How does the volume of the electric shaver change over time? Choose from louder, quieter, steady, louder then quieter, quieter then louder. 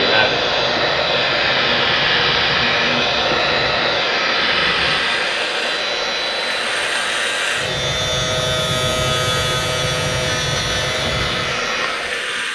louder.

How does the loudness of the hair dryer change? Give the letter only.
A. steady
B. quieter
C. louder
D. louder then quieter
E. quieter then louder
B.